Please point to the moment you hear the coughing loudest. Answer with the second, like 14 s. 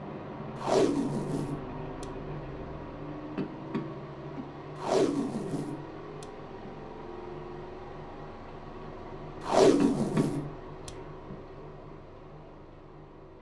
10 s.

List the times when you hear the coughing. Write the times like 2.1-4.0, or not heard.
3.4-4.4, 9.8-10.4.